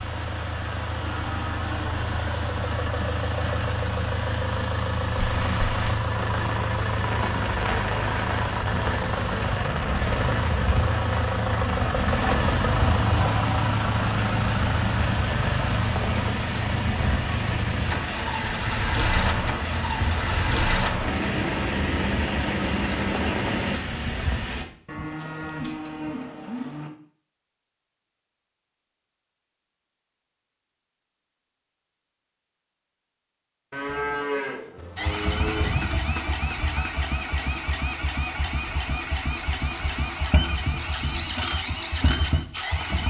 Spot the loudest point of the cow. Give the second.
34 s.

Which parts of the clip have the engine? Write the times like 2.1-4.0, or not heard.
0.0-23.8, 35.0-43.0.